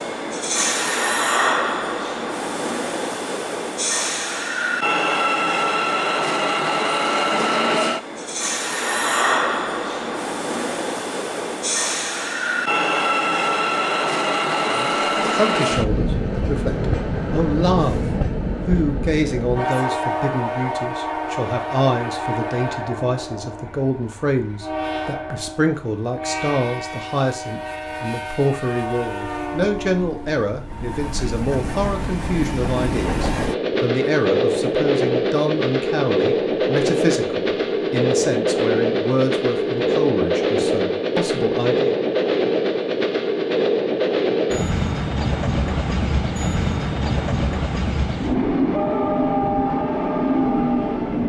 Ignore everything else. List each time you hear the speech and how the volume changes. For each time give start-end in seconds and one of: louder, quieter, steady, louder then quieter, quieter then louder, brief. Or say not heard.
14.7-42.0 steady.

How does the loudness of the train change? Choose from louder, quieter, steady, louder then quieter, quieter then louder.
quieter then louder.